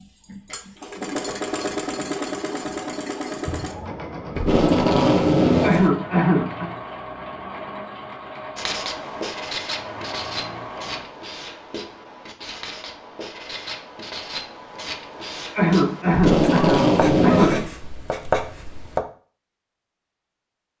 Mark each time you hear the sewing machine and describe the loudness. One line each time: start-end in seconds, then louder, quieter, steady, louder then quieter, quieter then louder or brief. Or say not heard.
0.0-11.1 quieter.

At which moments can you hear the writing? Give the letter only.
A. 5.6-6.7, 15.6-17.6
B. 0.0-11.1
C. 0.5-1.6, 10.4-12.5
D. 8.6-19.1
D.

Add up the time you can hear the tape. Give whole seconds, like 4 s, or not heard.
3 s.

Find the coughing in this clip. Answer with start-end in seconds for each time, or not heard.
5.6-6.7, 15.6-17.6.